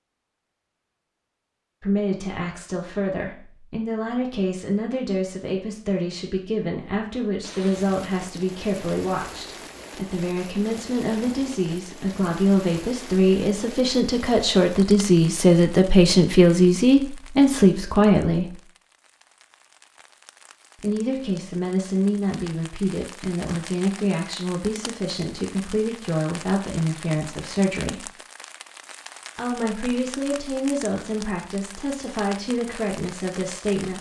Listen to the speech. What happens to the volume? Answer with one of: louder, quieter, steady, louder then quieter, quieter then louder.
louder then quieter.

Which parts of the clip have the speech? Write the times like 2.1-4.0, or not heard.
1.8-18.6, 20.8-28.1, 29.4-33.9.